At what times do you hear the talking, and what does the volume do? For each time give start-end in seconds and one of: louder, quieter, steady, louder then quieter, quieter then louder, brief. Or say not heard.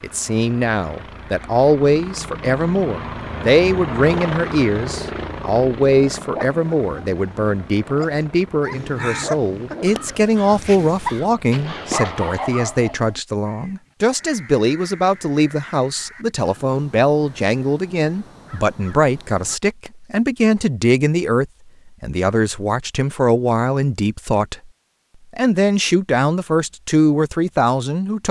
0.0-24.6 steady
25.4-28.2 brief.